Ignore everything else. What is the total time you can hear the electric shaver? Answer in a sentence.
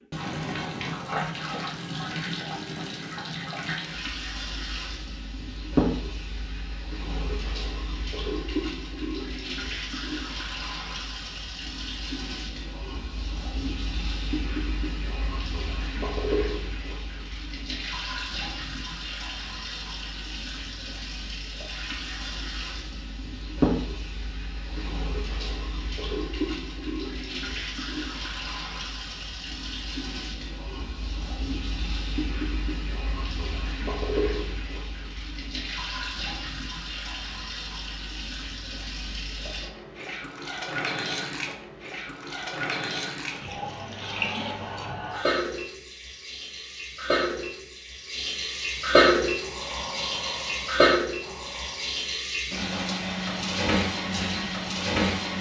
The electric shaver can't be heard in this clip.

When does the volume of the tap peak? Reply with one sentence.
The loudest moment of the tap is at 49 seconds.